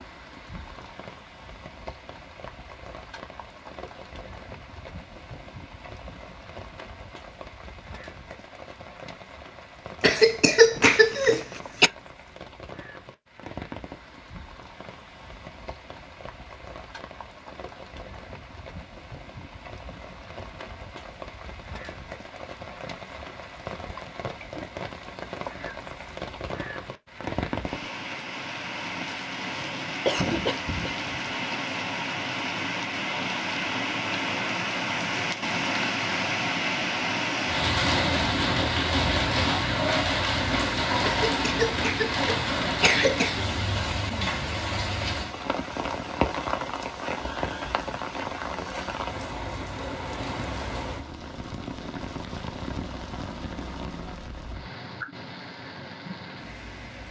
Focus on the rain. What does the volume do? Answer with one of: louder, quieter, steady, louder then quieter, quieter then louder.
louder then quieter.